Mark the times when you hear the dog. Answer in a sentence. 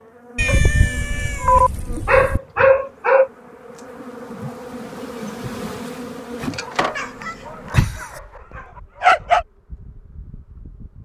The dog can be heard from 0.5 to 3.3 s and from 6.5 to 9.4 s.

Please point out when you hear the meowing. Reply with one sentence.
The meowing can be heard from 0.3 to 2.4 s and from 7.0 to 8.1 s.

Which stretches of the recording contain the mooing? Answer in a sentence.
You can't hear the mooing here.